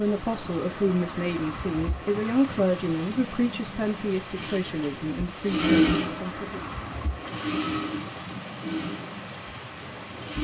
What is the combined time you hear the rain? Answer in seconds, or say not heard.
10 s.